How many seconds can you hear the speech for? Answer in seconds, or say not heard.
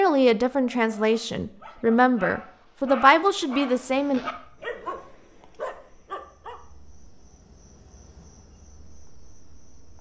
4 s.